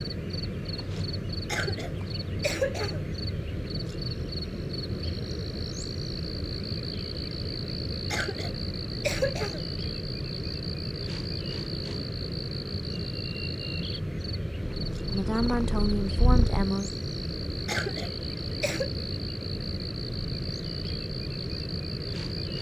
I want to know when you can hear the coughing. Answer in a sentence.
The coughing can be heard from 1.4 to 3.0 s, from 8.1 to 9.7 s and from 17.6 to 18.9 s.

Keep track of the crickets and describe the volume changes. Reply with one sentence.
The volume of the crickets stays about the same.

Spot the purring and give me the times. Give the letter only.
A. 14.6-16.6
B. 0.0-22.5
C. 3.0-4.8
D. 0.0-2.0
A.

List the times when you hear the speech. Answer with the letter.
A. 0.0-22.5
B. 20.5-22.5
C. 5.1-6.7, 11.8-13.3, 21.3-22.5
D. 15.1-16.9
D.